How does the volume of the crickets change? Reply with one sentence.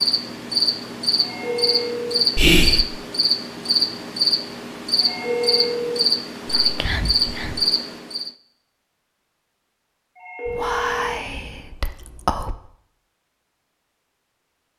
The volume of the crickets stays about the same.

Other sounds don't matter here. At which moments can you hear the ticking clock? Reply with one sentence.
The ticking clock can't be heard in this clip.